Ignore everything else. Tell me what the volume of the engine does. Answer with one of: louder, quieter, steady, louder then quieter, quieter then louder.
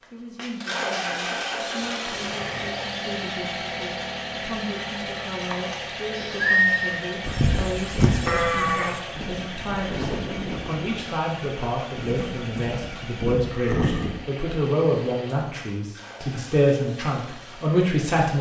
quieter.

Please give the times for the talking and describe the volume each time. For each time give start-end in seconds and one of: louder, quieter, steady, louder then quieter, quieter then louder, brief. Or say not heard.
0.1-18.3 louder.